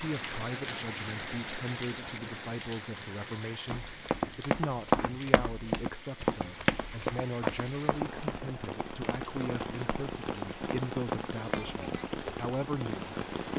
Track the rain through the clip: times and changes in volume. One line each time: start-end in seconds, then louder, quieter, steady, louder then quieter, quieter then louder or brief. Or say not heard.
0.0-13.5 quieter then louder.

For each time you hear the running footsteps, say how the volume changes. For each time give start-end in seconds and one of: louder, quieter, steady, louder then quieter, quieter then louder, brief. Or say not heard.
3.7-12.4 quieter.